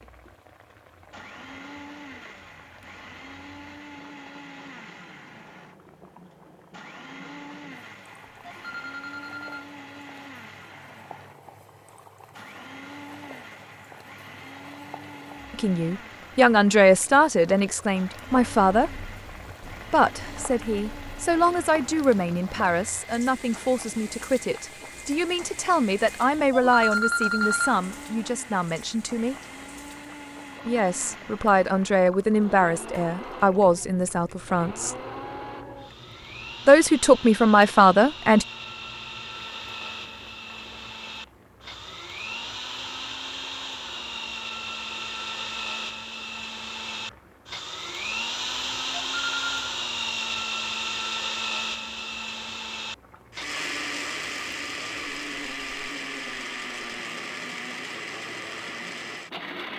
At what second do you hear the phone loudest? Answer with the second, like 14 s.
27 s.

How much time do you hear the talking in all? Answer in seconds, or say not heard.
19 s.